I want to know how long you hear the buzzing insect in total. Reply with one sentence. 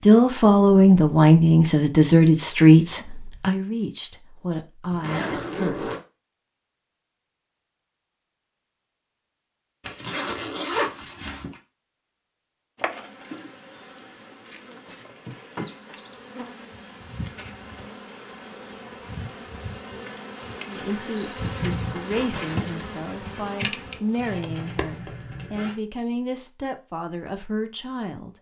The buzzing insect can be heard for 12 seconds in total.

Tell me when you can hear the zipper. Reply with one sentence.
You can hear the zipper from 4.9 to 6.0 s, from 9.8 to 11.6 s and from 24.1 to 25.8 s.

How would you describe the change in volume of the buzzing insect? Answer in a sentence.
The loudness of the buzzing insect goes up.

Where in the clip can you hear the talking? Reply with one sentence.
The talking can be heard from 0.1 to 6.0 s and from 20.6 to 28.3 s.